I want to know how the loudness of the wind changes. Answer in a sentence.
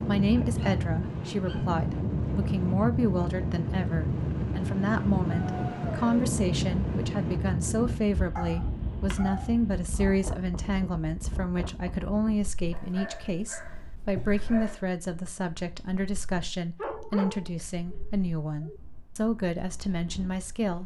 The volume of the wind goes down.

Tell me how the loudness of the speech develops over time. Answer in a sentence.
The volume of the speech stays about the same.